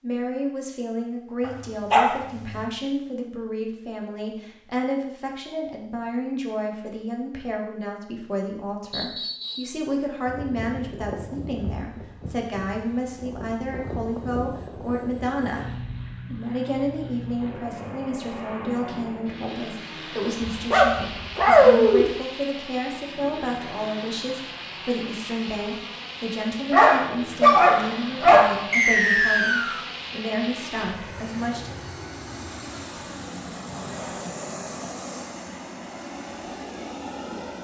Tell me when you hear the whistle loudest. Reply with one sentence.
The loudest moment of the whistle is at 29 seconds.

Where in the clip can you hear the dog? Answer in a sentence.
The dog can be heard from 1.4 to 2.5 s, from 20.4 to 22.1 s and from 26.7 to 28.5 s.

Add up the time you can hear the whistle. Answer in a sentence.
The whistle can be heard for 2 seconds in total.